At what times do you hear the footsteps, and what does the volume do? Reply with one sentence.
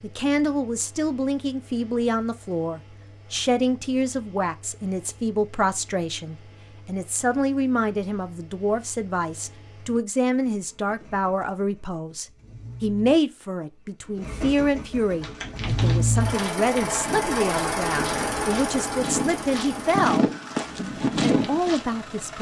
You can hear the footsteps from 15.1 to 21.9 s, getting louder.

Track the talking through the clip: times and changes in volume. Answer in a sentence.
You can hear the talking from 0.0 to 22.3 s, at a steady volume.